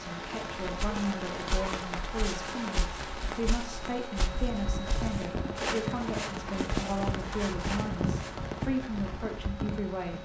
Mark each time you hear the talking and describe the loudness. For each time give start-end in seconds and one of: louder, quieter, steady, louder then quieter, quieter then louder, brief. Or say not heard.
0.0-10.1 steady.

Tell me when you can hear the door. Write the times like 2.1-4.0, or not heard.
not heard.